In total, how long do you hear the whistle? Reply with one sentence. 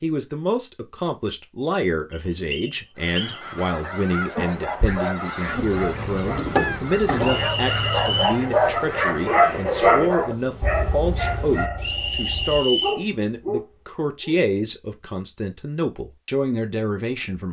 The whistle can be heard for 4 seconds in total.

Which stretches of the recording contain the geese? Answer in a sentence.
The geese can be heard from 3.0 to 9.3 s.